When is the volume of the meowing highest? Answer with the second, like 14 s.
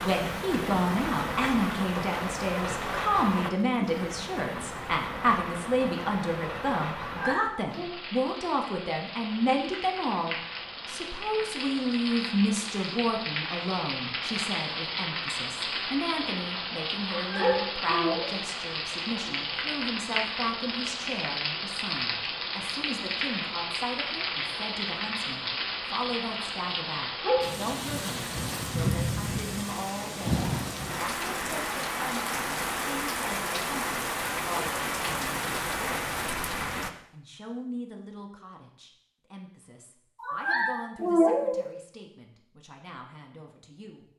41 s.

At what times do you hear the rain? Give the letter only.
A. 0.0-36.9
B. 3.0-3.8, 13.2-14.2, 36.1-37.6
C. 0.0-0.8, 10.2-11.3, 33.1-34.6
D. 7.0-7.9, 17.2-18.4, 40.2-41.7
A.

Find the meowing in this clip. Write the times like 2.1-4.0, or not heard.
7.0-7.9, 17.2-18.4, 40.2-41.7.